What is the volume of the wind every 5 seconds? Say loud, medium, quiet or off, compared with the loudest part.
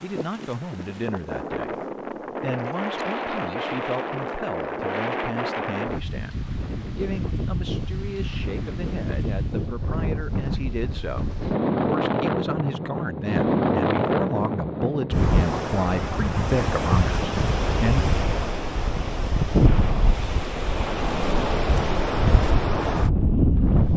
medium, medium, loud, loud, loud.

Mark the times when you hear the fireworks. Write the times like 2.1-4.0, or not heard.
not heard.